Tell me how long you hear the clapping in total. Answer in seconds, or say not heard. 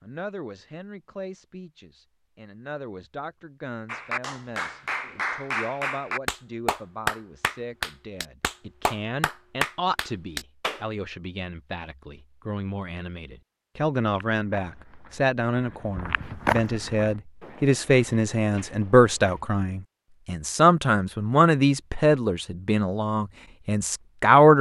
7 s.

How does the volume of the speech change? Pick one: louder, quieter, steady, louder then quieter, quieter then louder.
louder.